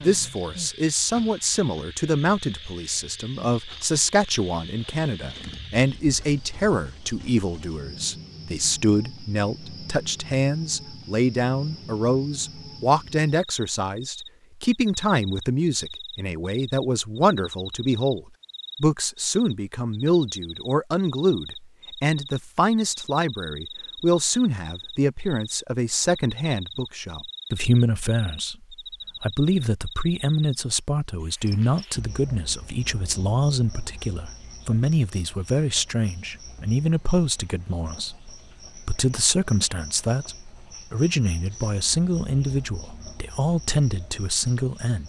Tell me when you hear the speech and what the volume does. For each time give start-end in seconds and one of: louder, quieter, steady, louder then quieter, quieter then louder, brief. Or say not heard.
0.0-45.0 steady.